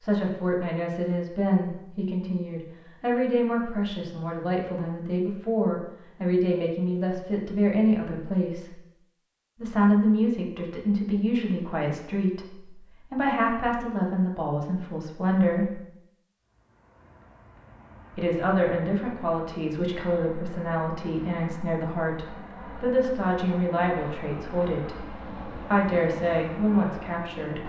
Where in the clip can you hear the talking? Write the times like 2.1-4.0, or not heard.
0.0-8.8, 9.6-15.8, 18.1-27.6.